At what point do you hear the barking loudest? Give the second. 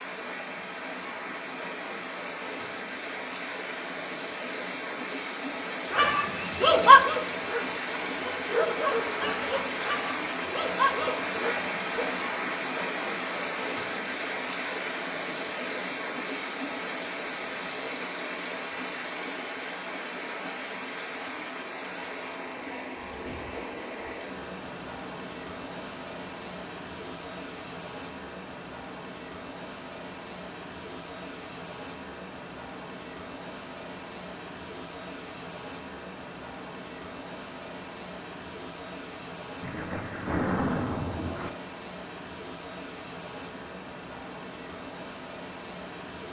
7 s.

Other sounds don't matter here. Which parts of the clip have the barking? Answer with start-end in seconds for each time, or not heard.
5.9-12.2.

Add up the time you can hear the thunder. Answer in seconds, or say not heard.
2 s.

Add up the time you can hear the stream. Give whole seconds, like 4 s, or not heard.
46 s.